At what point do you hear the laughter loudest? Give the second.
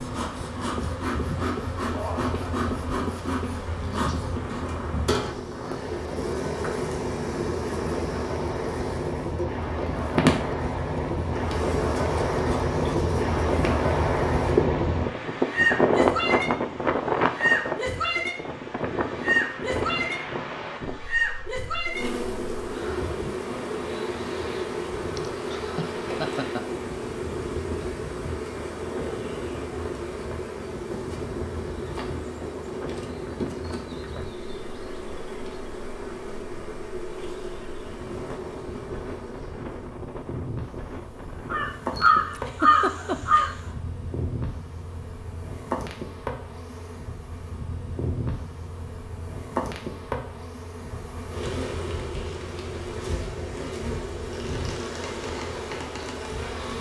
43 s.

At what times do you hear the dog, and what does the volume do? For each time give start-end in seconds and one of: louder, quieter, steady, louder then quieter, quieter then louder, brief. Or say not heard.
not heard.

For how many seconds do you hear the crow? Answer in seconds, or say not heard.
2 s.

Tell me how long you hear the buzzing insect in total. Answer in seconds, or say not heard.
57 s.